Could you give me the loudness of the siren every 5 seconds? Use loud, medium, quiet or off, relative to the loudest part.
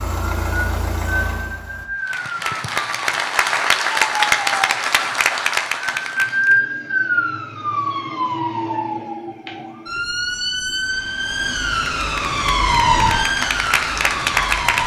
medium, loud, loud.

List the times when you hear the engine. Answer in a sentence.
You can hear the engine from 0.0 to 1.9 s.